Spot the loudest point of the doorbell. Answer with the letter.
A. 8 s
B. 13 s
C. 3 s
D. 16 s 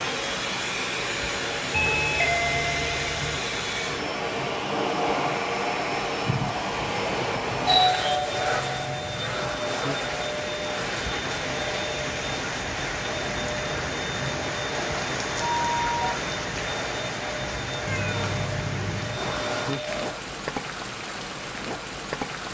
A.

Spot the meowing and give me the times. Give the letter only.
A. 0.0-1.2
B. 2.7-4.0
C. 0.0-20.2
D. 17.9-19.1
D.